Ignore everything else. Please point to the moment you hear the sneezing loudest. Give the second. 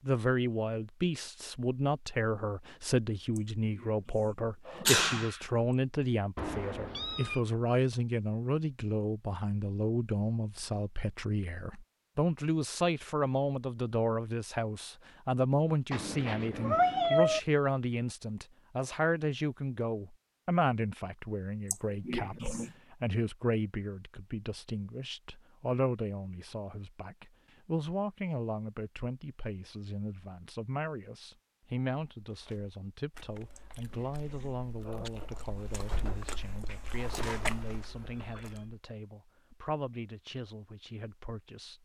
5 s.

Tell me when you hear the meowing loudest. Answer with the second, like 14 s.
17 s.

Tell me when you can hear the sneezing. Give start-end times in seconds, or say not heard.
3.4-5.5, 21.7-22.7, 33.5-35.1.